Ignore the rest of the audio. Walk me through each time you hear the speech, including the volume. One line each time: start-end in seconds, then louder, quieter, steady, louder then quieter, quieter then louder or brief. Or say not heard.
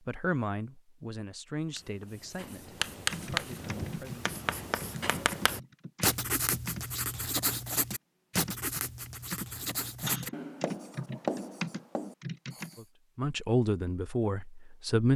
0.1-4.3 quieter then louder
12.8-15.1 brief.